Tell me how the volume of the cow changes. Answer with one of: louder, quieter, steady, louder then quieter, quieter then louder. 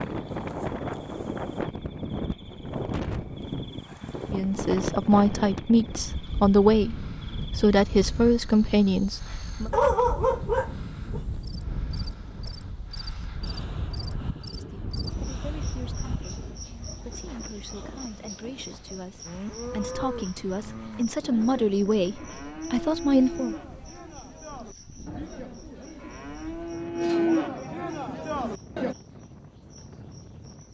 louder.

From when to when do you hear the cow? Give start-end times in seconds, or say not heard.
19.2-28.9.